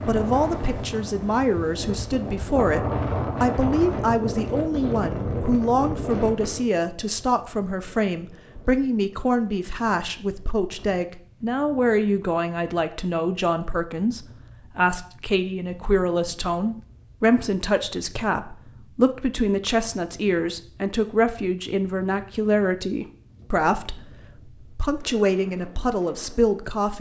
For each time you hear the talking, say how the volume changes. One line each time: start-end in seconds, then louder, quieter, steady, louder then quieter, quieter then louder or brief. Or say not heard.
0.1-26.9 steady.